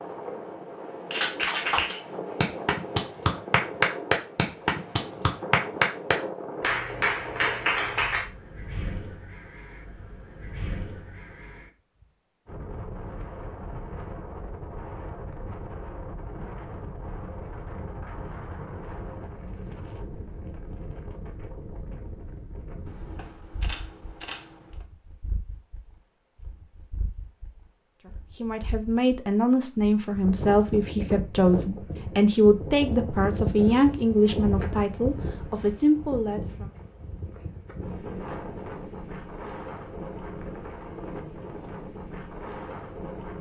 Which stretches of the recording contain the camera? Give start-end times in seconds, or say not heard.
22.9-24.9.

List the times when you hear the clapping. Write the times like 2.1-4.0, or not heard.
1.1-8.2.